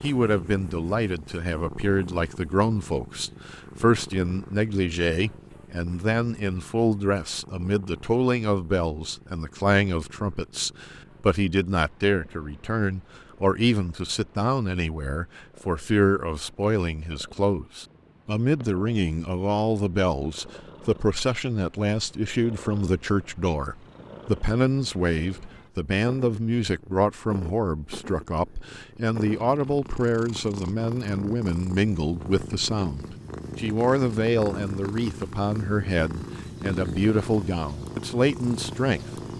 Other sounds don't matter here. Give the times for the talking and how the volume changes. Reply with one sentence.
You can hear the talking from 0.0 to 39.2 s, at a steady volume.